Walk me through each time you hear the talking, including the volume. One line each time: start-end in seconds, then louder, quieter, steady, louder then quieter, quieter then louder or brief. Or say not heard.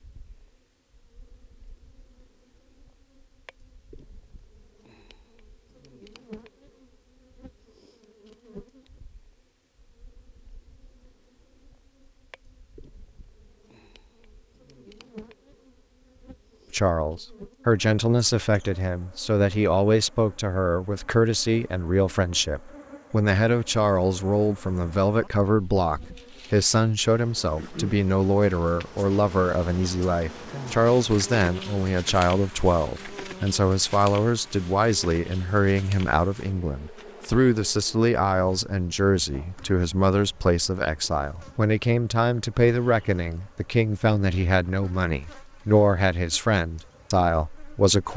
16.7-48.1 steady.